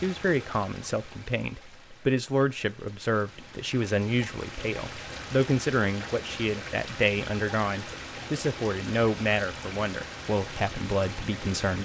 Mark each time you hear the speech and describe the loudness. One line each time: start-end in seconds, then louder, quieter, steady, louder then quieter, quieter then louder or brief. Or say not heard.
0.0-11.8 steady.